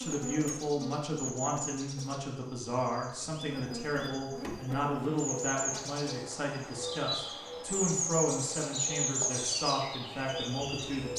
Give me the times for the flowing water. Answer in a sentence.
You can't hear the flowing water here.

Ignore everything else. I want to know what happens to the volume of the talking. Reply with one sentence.
The volume of the talking stays about the same.